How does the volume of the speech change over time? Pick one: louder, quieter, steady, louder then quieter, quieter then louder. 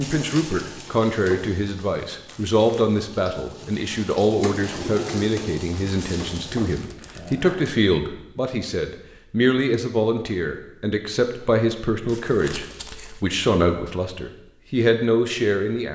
steady.